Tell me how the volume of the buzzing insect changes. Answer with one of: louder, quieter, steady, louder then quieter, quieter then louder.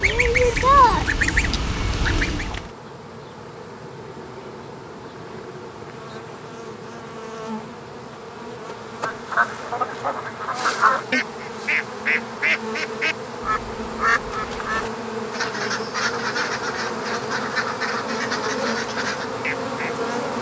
louder.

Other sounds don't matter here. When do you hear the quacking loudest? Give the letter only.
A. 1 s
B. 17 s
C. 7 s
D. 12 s
A.